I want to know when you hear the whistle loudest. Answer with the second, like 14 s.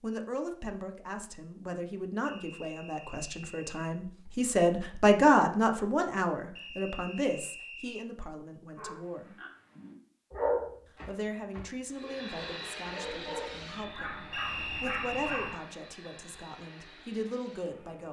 15 s.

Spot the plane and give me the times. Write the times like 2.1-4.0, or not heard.
11.8-18.0.